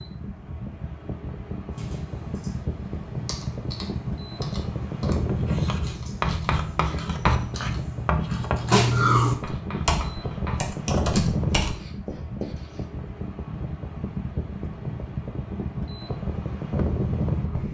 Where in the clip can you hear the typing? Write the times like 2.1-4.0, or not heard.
1.7-11.8.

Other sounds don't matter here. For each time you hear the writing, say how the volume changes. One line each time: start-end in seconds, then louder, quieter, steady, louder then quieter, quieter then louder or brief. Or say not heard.
5.2-10.7 quieter
11.5-12.8 brief.